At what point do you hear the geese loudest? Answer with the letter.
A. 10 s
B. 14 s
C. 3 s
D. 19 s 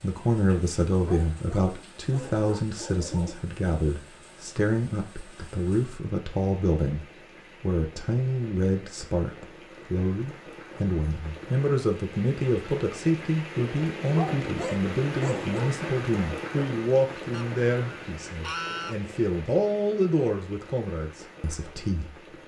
D.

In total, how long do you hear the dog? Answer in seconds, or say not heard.
4 s.